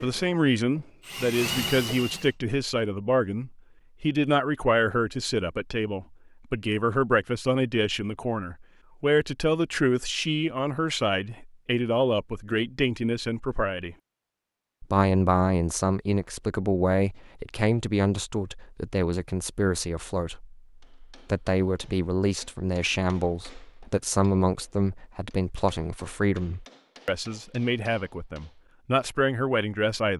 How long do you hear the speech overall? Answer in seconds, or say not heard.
29 s.